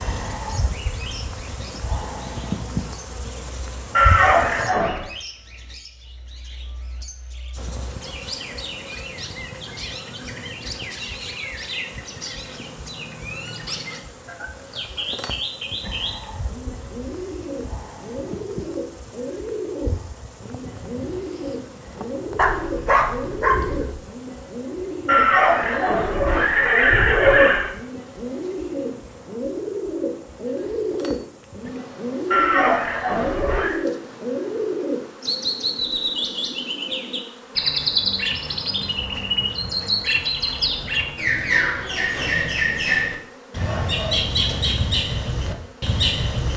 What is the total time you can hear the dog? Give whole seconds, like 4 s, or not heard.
2 s.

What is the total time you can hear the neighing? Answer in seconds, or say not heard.
5 s.